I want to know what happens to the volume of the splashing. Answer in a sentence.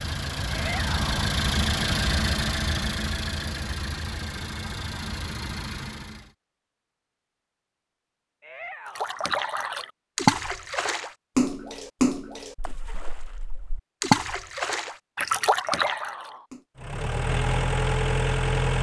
The loudness of the splashing goes down, then up.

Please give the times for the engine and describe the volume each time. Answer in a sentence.
The engine can be heard from 0.0 to 6.3 s, getting quieter; and briefly from 16.8 to 18.7 s.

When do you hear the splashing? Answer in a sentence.
The splashing can be heard from 8.9 to 16.6 s.